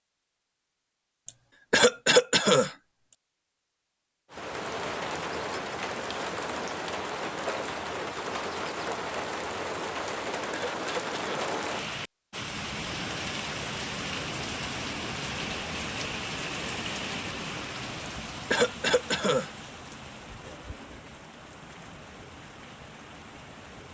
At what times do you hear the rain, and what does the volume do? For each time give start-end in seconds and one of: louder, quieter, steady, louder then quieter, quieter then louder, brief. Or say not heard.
4.3-23.9 quieter.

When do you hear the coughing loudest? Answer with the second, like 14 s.
2 s.